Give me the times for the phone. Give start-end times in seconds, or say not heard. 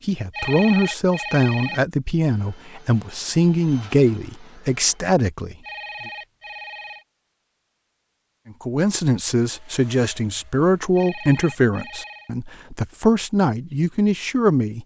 0.3-1.8, 5.6-7.0, 10.9-12.3.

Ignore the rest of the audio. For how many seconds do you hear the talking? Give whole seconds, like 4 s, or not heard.
12 s.